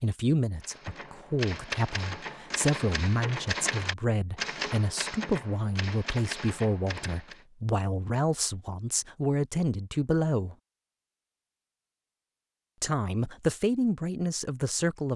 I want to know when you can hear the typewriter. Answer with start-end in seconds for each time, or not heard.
0.6-7.5.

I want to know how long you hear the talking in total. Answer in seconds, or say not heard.
13 s.